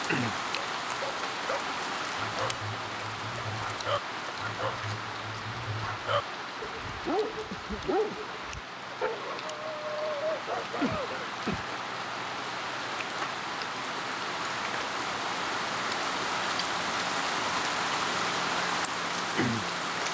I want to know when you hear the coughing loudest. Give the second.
11 s.